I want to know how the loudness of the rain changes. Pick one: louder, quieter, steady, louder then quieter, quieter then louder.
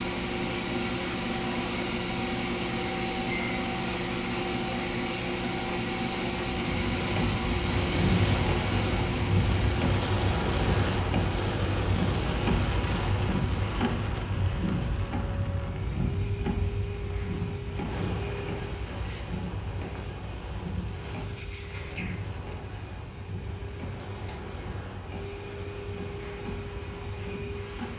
quieter.